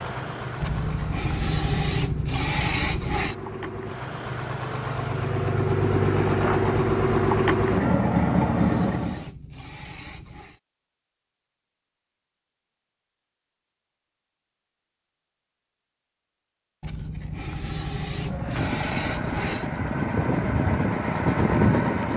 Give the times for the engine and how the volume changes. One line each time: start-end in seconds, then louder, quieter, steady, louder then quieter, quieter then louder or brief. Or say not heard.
0.0-9.3 louder
18.1-22.1 louder.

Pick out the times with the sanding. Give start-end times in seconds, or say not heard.
0.6-3.4, 7.8-10.6, 16.8-19.7.